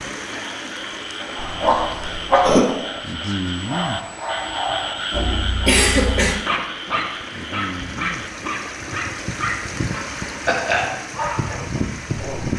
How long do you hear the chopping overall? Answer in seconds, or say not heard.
not heard.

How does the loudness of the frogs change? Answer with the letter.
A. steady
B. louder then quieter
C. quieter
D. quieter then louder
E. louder
B.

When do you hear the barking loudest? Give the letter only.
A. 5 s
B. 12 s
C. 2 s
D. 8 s
C.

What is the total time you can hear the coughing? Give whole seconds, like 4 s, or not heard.
3 s.